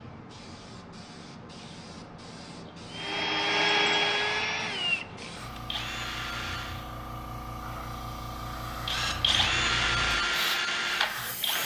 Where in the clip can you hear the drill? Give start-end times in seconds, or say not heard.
2.9-6.8, 8.8-11.6.